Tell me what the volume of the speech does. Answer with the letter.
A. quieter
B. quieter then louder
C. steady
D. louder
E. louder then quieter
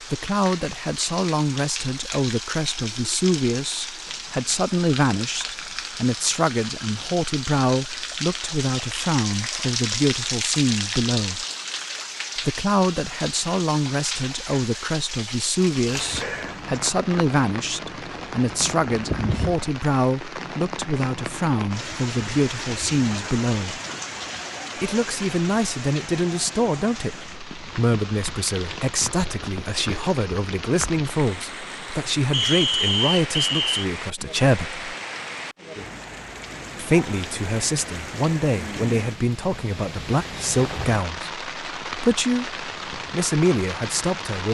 C.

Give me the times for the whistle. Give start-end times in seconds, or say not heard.
32.3-33.9.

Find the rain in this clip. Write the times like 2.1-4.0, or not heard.
0.0-44.4.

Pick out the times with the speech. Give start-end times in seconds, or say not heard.
0.1-11.4, 12.3-23.8, 24.8-34.9, 36.8-44.4.